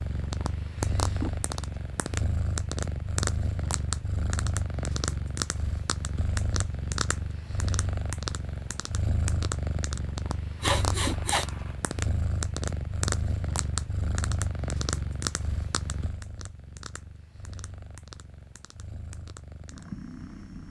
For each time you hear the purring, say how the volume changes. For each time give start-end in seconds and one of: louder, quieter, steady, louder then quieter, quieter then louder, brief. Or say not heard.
0.0-20.6 quieter.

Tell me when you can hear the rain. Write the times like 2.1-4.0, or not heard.
not heard.